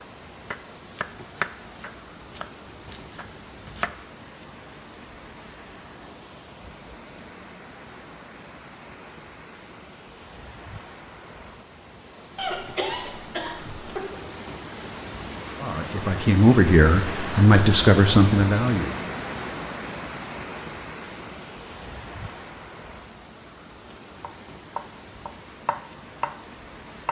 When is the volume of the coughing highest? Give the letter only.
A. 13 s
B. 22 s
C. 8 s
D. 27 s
A.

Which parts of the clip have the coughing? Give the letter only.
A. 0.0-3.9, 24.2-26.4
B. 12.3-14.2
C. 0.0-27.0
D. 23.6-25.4
B.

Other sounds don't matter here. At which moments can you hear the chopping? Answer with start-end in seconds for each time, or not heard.
0.0-3.9, 24.2-26.4.